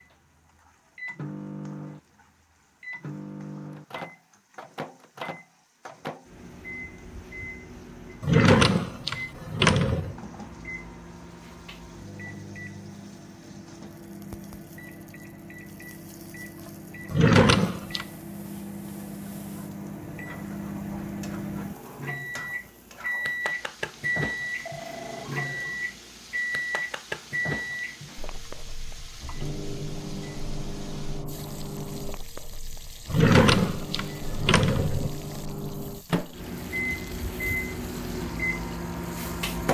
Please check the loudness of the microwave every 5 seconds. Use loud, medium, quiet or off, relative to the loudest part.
medium, medium, medium, medium, loud, loud, medium, loud.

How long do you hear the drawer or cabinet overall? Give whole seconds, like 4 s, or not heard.
5 s.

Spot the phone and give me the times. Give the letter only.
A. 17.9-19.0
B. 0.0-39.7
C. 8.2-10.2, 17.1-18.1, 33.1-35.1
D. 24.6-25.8
D.